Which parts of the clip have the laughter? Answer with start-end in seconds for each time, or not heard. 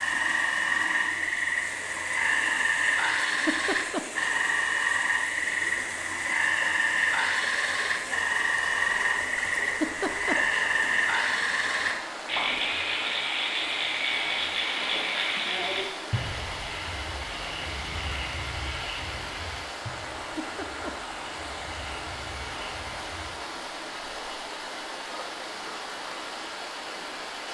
3.1-4.4, 9.7-10.7, 20.2-20.9.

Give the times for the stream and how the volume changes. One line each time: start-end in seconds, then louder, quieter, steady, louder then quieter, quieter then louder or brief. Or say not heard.
0.0-27.4 steady.